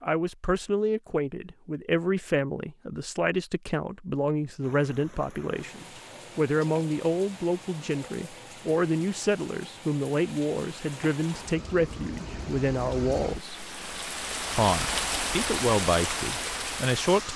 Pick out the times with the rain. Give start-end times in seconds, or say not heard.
4.6-17.3.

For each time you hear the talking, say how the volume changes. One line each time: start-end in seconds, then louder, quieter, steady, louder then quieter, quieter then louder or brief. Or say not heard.
0.0-13.7 steady
14.6-17.3 brief.